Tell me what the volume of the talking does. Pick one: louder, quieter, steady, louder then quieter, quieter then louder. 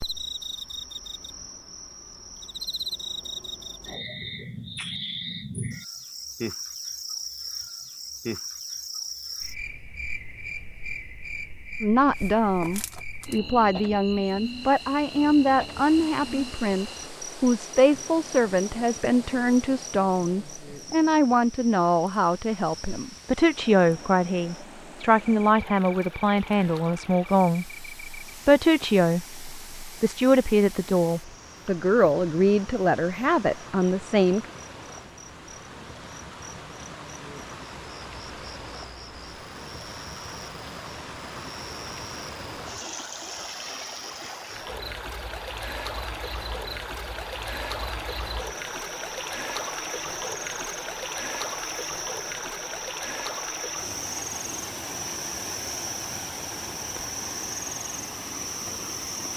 steady.